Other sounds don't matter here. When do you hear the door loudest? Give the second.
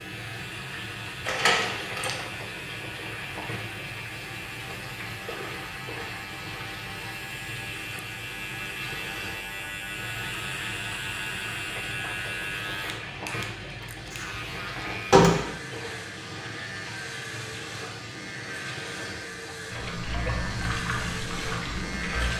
15 s.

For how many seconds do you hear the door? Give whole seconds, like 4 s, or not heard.
2 s.